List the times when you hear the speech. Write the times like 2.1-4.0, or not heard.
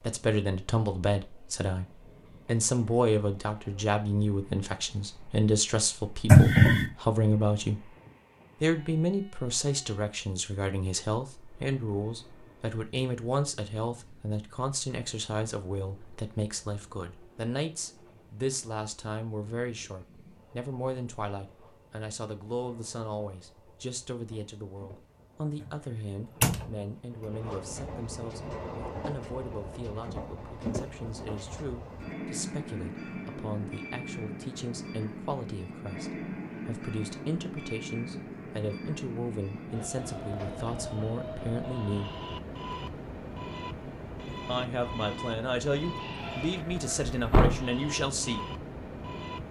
0.0-1.9, 2.5-8.0, 8.6-42.1, 44.5-48.5.